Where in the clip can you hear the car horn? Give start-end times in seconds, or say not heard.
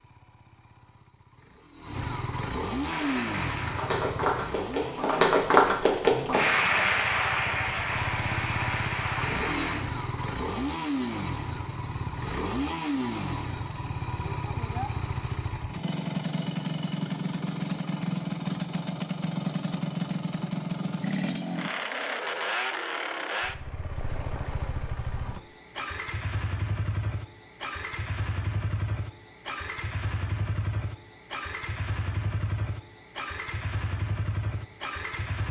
not heard.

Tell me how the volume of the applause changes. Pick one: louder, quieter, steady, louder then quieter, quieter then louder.
louder then quieter.